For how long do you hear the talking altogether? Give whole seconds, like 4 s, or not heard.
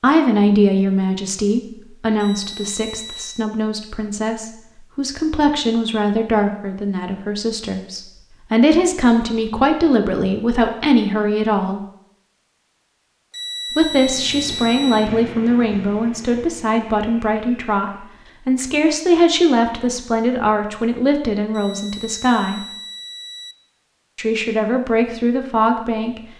23 s.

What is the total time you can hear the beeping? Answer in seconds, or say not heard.
5 s.